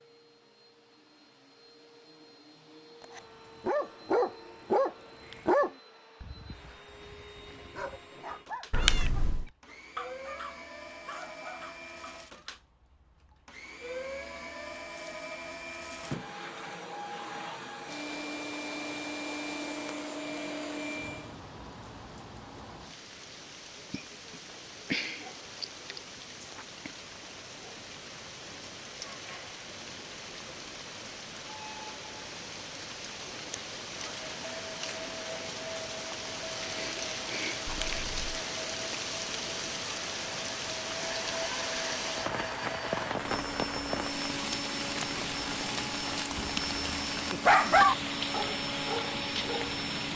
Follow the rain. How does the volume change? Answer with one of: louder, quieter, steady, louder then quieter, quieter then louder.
louder.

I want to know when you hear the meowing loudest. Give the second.
9 s.